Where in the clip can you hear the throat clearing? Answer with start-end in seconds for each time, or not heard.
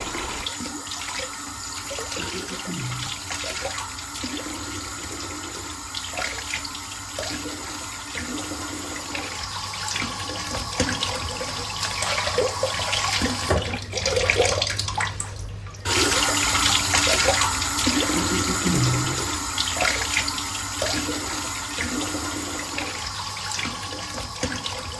2.1-3.2, 18.1-19.2.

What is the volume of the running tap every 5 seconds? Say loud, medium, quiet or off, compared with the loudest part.
medium, medium, loud, loud, medium.